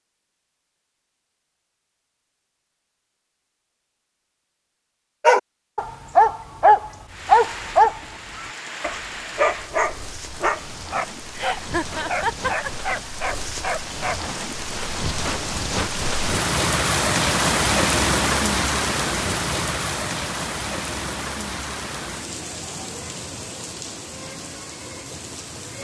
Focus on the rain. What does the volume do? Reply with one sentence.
The volume of the rain goes up, then down.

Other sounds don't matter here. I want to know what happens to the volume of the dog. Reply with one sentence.
The volume of the dog goes down.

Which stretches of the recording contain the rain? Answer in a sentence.
You can hear the rain from 7.0 to 25.7 s.